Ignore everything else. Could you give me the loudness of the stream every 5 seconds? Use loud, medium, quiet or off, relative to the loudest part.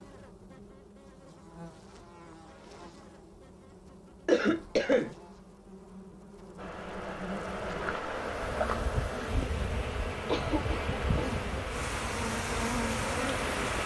off, loud, loud.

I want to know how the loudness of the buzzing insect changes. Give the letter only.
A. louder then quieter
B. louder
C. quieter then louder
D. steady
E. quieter
B.